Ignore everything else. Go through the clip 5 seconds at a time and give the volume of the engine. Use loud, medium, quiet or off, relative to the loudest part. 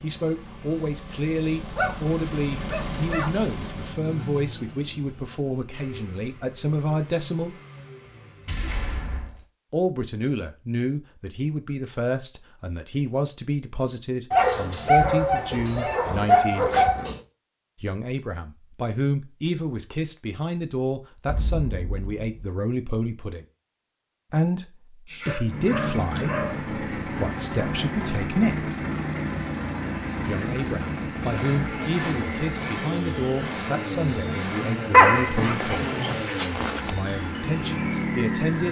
medium, quiet, off, off, off, loud, loud, loud.